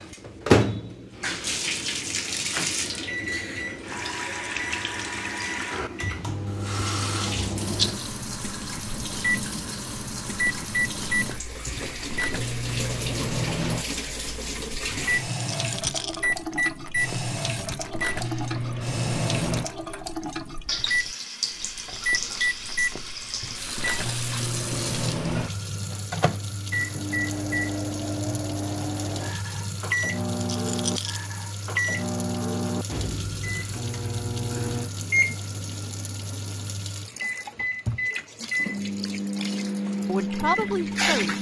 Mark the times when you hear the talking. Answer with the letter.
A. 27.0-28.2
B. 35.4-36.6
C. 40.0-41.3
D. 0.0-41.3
C.